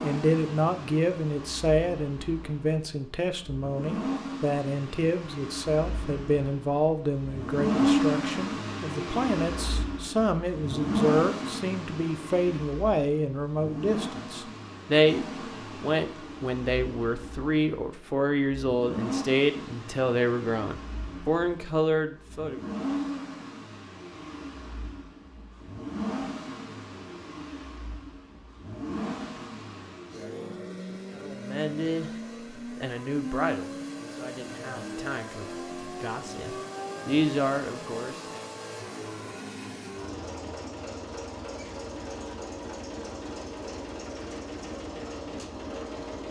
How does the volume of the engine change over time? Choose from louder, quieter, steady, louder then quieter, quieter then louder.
quieter.